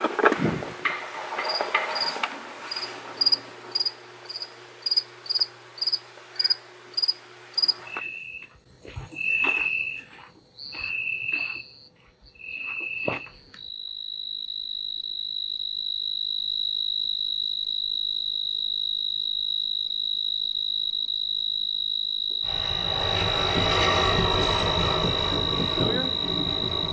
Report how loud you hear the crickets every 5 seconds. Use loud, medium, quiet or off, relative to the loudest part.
loud, loud, medium, loud, loud, loud.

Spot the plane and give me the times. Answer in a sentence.
The plane can be heard from 22.4 to 26.8 s.